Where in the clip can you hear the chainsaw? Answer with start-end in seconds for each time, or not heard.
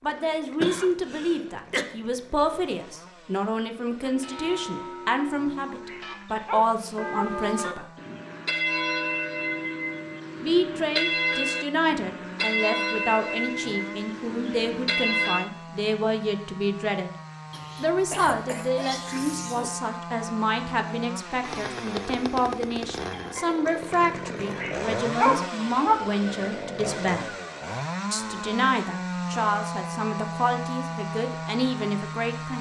0.0-32.5.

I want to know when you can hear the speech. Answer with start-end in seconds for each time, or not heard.
0.0-7.8, 10.4-17.1, 17.8-27.3, 28.1-32.5.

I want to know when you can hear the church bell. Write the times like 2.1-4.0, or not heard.
4.0-15.4.